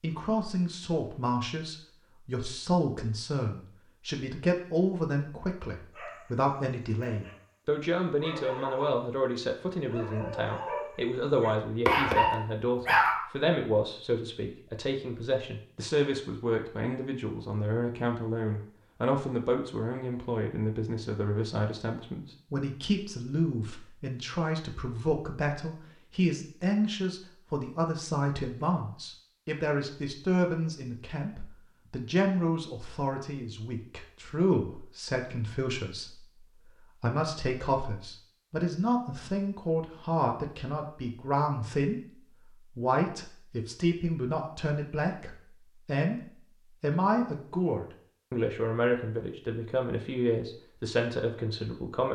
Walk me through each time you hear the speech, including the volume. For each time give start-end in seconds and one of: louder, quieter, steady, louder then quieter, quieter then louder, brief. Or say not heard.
0.0-52.0 steady.